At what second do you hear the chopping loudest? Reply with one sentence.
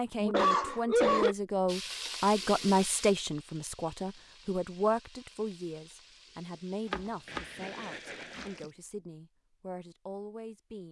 The volume of the chopping peaks at 7 seconds.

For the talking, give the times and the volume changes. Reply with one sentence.
You can hear the talking from 0.0 to 10.8 s, getting quieter.